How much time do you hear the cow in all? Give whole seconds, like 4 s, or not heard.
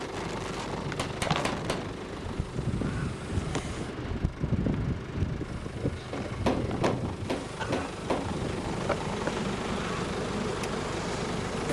not heard.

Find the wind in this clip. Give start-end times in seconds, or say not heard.
0.0-11.6.